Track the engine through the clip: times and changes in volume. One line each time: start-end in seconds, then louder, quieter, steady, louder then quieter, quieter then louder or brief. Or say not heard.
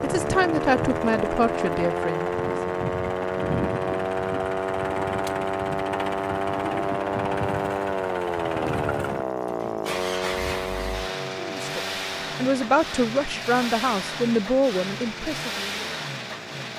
0.0-16.7 steady.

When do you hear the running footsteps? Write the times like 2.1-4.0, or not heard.
not heard.